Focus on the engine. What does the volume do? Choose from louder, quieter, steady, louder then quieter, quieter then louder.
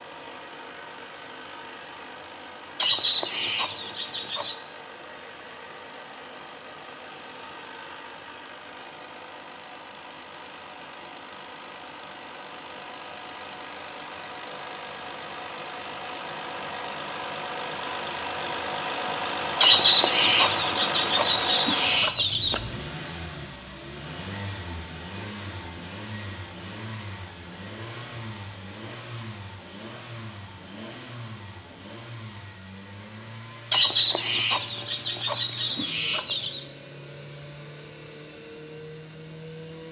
louder then quieter.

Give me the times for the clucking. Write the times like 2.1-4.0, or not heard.
2.8-4.5, 19.6-22.6, 33.7-36.6.